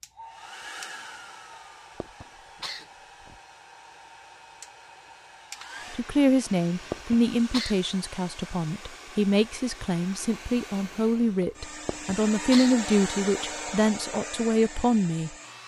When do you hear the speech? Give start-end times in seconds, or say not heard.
5.9-15.3.